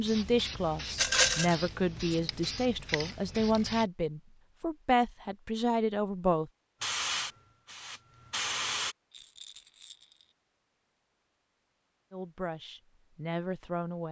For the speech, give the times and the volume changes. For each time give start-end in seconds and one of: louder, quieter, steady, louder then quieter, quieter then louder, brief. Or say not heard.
0.0-6.5 steady
12.1-14.0 brief.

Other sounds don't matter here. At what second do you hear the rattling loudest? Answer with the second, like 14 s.
1 s.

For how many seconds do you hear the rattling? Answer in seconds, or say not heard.
2 s.